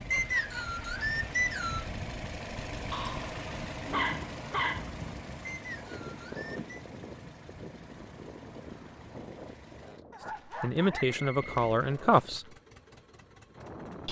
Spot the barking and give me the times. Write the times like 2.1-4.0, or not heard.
2.9-4.8, 10.1-12.4.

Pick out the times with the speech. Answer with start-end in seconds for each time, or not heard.
10.6-12.4.